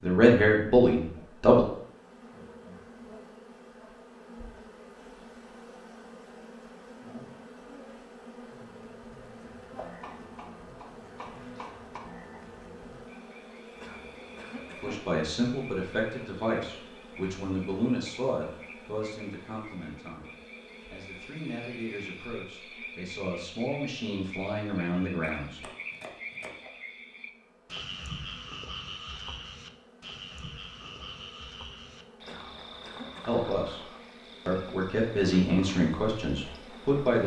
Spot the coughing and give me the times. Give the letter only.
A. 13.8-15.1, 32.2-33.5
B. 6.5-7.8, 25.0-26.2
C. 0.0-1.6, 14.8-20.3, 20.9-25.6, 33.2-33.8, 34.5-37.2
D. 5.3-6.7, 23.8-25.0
A.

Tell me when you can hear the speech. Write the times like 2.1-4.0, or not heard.
0.0-1.6, 14.8-20.3, 20.9-25.6, 33.2-33.8, 34.5-37.2.